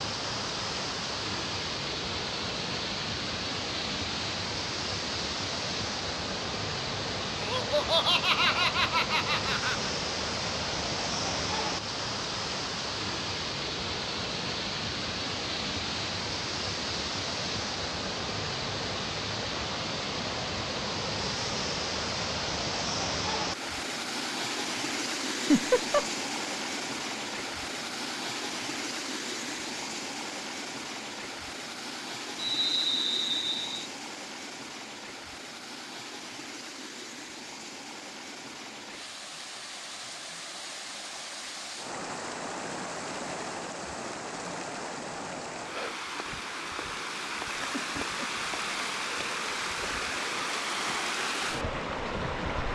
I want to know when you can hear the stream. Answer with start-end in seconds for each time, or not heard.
0.0-52.6.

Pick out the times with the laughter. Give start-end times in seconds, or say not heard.
7.3-9.9, 25.3-26.1, 47.7-48.3.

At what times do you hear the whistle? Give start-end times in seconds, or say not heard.
32.4-33.9.